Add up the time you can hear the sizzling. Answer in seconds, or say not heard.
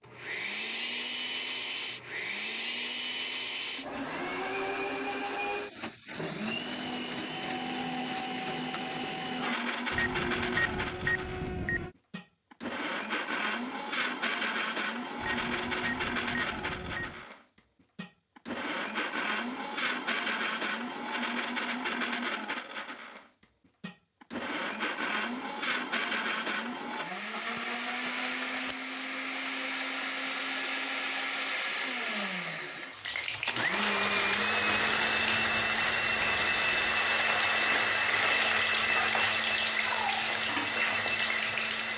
9 s.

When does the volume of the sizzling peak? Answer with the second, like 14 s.
39 s.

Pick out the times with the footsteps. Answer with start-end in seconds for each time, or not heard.
not heard.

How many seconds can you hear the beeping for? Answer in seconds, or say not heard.
6 s.